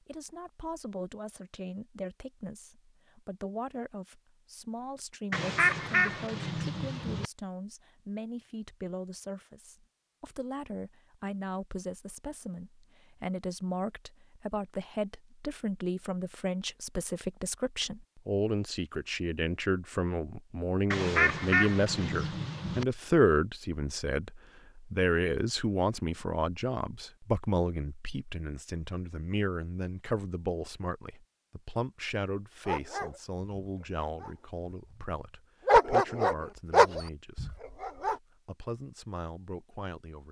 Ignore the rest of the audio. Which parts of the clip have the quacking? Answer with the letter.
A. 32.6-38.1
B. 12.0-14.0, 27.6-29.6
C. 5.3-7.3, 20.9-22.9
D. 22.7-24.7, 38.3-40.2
C.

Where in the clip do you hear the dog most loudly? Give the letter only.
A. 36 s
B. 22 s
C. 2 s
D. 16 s
A.